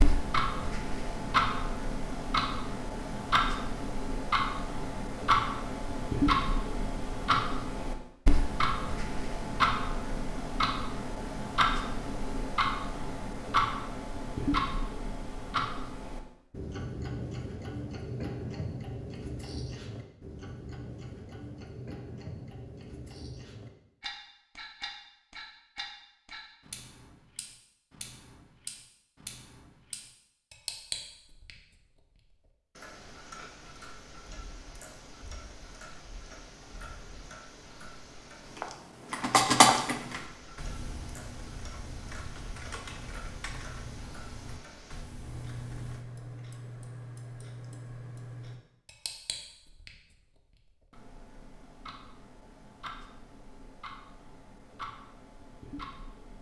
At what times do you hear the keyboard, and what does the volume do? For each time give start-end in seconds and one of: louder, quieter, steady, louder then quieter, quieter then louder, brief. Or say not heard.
38.4-46.0 quieter.